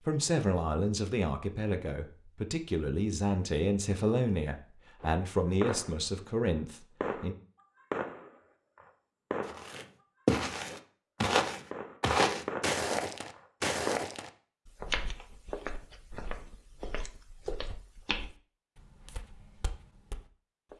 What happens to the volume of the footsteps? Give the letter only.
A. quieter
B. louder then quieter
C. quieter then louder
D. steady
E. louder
A.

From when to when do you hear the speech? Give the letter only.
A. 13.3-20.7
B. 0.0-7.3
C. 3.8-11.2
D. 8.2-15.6
B.